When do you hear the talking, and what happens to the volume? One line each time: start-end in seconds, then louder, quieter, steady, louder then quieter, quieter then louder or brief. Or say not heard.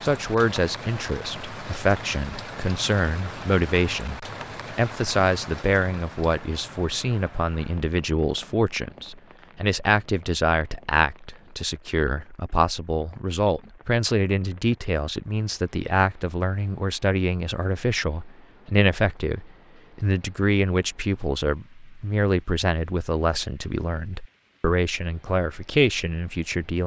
0.0-26.8 steady.